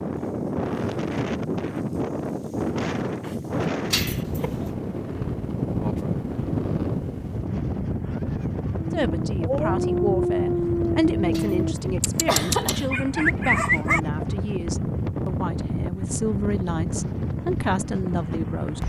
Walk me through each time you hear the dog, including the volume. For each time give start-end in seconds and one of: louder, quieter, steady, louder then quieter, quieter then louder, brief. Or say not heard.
8.8-14.0 steady.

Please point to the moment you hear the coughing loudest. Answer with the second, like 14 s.
12 s.